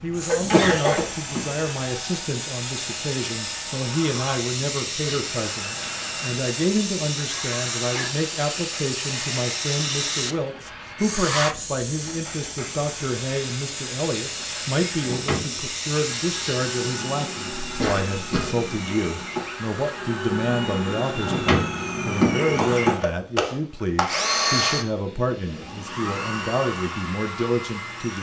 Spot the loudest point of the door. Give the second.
22 s.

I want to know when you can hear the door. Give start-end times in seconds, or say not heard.
0.3-1.5, 15.0-15.6, 21.2-22.9.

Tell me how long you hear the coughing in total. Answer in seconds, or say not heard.
2 s.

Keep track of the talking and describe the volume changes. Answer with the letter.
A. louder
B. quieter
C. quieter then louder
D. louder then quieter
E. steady
E.